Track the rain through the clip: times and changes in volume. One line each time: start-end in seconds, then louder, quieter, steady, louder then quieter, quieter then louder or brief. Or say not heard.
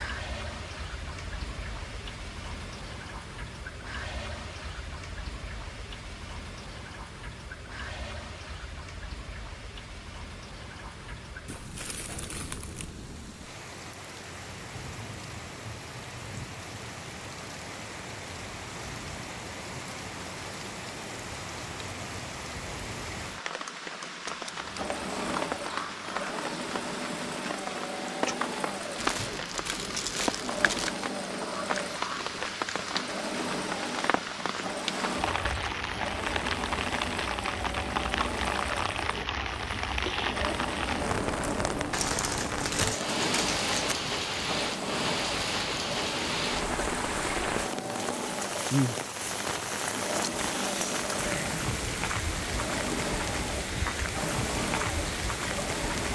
0.0-56.1 louder.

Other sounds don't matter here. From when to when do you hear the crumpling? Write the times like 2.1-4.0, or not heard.
11.4-12.9, 28.9-31.1, 41.9-44.0.